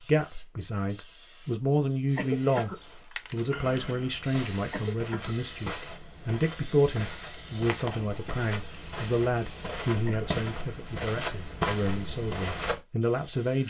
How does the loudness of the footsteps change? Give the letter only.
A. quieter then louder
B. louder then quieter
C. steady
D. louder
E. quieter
D.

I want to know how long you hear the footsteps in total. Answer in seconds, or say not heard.
9 s.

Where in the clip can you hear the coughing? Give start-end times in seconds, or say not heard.
2.1-2.8, 4.7-5.3, 10.1-10.7.